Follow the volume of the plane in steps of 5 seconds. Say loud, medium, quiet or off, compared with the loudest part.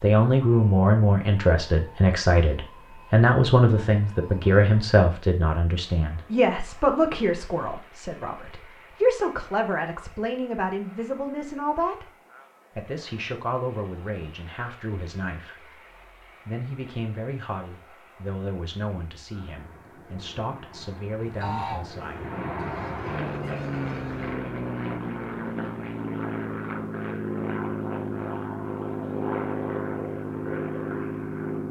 quiet, quiet, quiet, quiet, loud, loud, loud.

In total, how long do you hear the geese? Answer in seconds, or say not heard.
3 s.